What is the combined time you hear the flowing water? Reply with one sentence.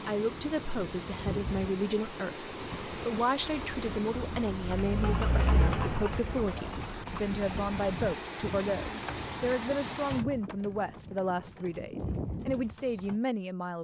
You can hear the flowing water for 10 seconds altogether.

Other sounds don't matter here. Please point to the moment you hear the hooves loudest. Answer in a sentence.
The volume of the hooves peaks at 6 seconds.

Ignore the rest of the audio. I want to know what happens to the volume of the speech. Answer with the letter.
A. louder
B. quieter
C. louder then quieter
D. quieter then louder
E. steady
E.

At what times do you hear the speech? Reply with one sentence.
The speech can be heard from 0.1 to 13.7 s.